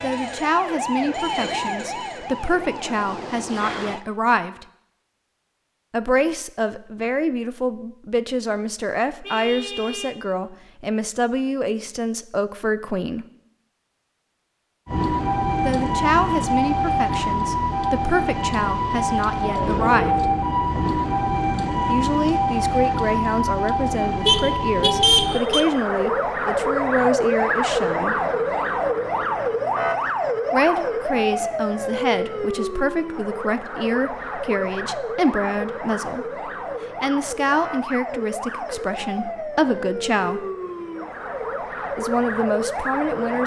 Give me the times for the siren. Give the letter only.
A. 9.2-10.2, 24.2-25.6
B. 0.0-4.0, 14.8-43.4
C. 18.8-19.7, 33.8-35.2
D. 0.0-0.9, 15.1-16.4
B.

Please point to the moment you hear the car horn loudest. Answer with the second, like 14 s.
25 s.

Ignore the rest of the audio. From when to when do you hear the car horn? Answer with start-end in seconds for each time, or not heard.
9.2-10.2, 24.2-25.6.